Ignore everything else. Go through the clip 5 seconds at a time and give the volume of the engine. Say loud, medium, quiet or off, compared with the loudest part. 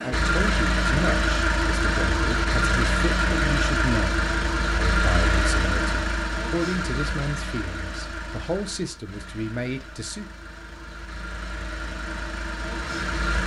loud, medium, medium.